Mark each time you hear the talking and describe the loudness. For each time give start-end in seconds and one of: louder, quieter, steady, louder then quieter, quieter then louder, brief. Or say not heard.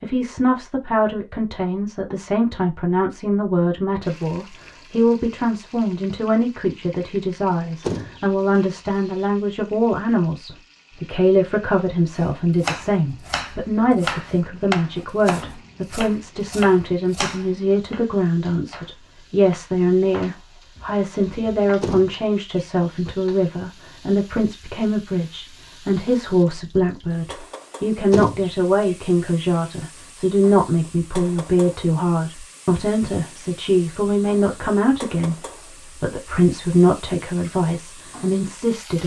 0.0-39.0 steady.